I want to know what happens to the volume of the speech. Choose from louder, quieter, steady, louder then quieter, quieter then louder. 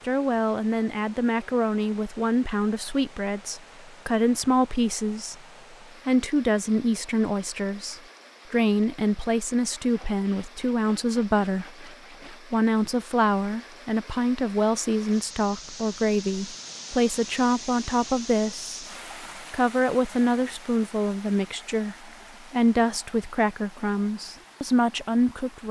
steady.